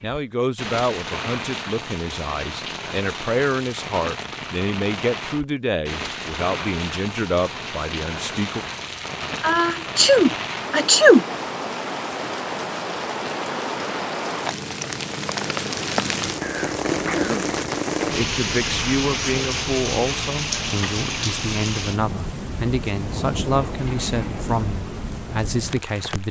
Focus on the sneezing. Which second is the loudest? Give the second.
11 s.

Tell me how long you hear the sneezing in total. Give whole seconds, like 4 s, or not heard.
3 s.